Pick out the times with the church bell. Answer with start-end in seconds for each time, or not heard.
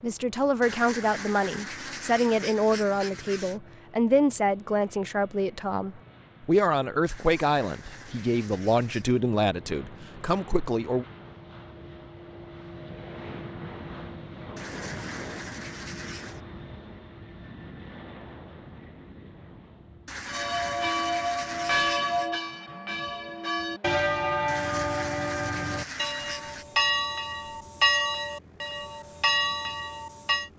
20.2-30.5.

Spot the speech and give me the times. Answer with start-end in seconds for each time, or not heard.
0.0-11.1.